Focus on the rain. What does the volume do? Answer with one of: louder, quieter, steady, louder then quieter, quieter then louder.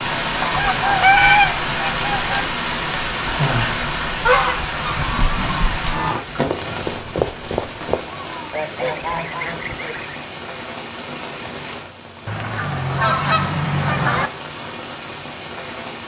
quieter.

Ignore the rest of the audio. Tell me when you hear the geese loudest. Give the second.
1 s.